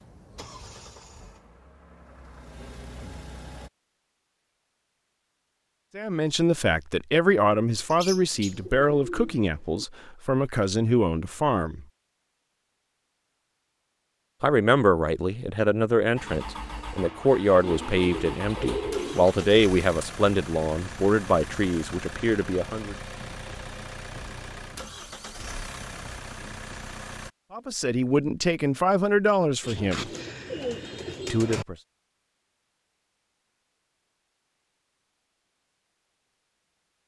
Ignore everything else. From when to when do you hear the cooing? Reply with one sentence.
You can hear the cooing from 7.9 to 9.8 s, from 17.6 to 19.5 s and from 29.6 to 31.6 s.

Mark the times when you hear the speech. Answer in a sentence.
The speech can be heard from 6.0 to 11.8 s, from 14.4 to 22.9 s, from 27.5 to 30.1 s and from 31.3 to 31.8 s.